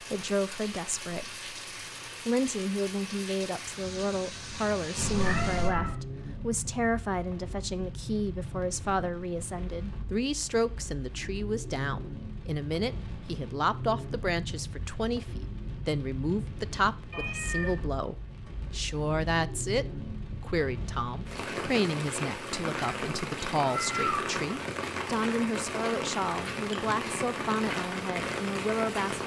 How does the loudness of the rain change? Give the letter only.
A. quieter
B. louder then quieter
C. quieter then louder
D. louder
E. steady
D.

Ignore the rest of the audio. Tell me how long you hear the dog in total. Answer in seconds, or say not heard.
not heard.